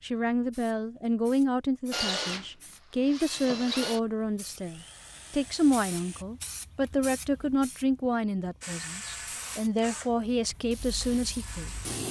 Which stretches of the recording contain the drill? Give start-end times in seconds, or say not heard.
1.9-6.2, 8.6-12.0.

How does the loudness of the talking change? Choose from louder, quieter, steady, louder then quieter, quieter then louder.
steady.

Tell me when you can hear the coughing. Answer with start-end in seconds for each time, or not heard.
not heard.